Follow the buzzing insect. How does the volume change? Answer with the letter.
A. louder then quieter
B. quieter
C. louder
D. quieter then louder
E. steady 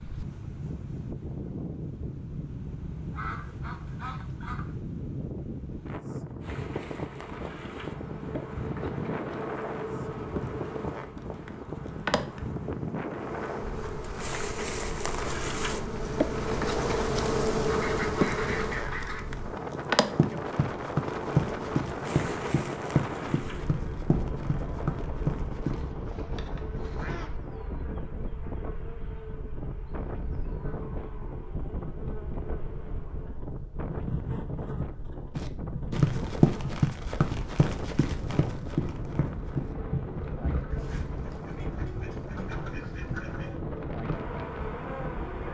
A.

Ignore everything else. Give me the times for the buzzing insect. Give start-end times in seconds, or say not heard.
6.4-45.4.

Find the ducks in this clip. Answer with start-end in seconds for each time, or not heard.
3.1-4.8, 17.7-19.2, 25.6-27.4, 40.7-43.6.